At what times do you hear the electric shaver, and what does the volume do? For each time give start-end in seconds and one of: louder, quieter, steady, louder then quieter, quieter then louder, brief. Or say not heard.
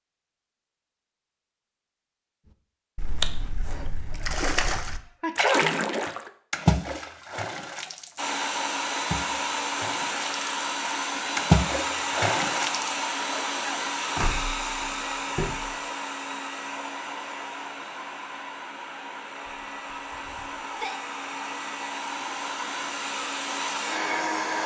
not heard.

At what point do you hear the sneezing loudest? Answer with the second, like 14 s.
5 s.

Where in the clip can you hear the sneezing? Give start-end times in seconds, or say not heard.
4.8-6.1, 13.3-13.9, 19.4-21.0.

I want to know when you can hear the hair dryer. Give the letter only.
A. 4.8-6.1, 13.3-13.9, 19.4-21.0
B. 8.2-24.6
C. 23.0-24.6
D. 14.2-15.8
B.